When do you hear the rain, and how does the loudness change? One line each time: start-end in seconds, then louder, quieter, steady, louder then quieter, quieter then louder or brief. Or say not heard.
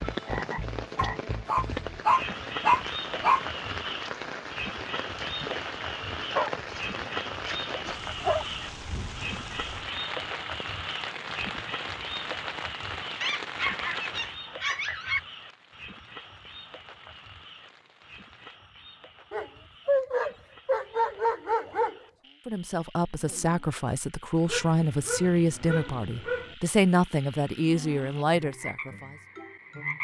0.0-18.6 quieter.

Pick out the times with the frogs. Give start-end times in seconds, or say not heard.
0.0-29.9.